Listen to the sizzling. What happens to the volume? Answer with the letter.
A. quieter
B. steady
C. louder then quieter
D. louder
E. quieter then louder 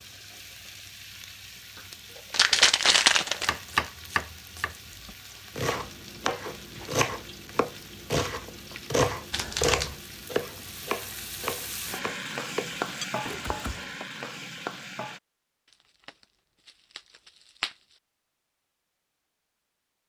D.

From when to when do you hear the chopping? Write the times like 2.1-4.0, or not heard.
3.5-14.1.